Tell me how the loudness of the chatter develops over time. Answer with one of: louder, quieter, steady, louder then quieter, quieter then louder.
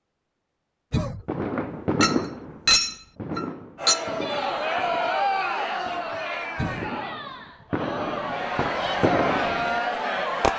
quieter then louder.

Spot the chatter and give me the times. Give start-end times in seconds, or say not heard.
3.8-10.5.